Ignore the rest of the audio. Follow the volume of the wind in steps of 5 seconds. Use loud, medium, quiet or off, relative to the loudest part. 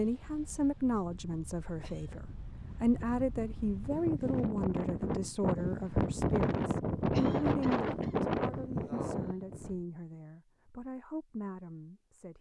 medium, loud, off.